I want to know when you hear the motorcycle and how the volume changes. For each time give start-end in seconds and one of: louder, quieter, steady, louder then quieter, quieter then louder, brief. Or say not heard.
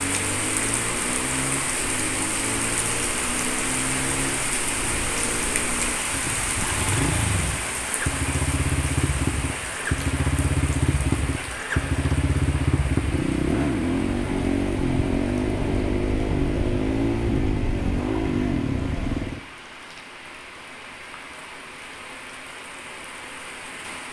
0.0-19.4 louder.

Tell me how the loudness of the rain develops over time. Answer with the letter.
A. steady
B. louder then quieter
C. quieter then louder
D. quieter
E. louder
D.